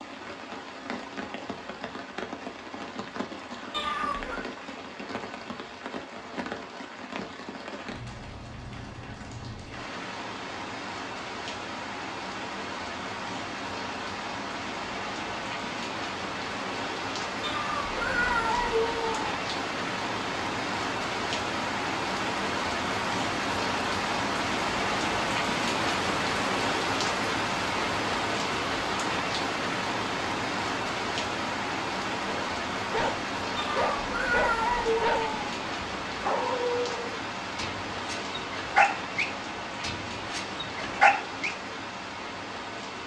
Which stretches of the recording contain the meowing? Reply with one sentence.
You can hear the meowing from 3.7 to 4.4 s, from 17.4 to 19.2 s and from 33.5 to 35.5 s.